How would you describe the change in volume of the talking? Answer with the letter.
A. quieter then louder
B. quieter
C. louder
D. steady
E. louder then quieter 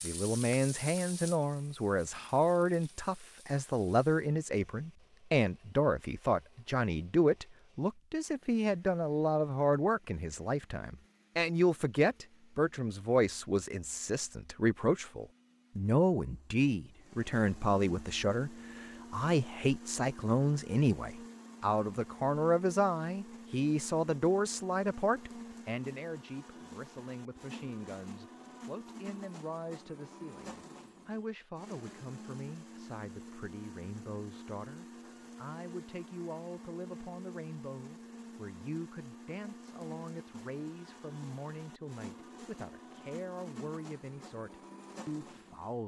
B.